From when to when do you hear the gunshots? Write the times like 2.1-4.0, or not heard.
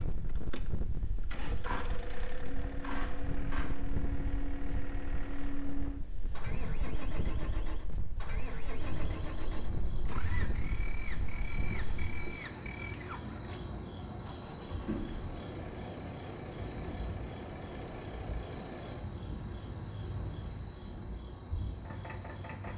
1.6-3.6.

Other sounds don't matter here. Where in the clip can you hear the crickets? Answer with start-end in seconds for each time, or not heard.
8.7-22.7.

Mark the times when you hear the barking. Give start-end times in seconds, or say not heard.
not heard.